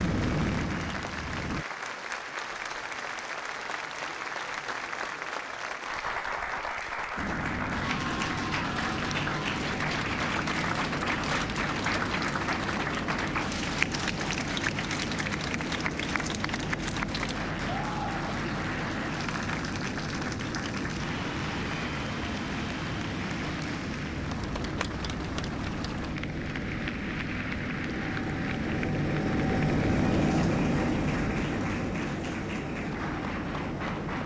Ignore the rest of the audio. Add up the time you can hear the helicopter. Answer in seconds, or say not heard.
29 s.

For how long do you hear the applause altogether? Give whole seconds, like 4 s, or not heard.
34 s.